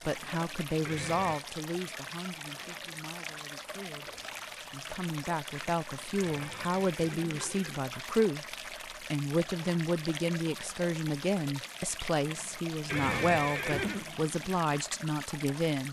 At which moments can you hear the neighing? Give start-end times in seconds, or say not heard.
0.8-1.4, 6.2-7.8, 12.8-14.1.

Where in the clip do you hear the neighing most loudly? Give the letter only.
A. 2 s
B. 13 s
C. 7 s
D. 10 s
B.